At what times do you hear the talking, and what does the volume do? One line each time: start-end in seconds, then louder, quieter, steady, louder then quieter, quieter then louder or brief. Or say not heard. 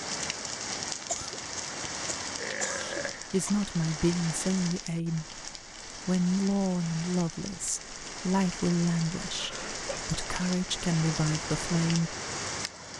2.8-12.2 steady.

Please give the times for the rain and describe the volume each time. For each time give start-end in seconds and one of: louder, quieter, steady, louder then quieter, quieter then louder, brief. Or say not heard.
0.0-12.9 quieter then louder.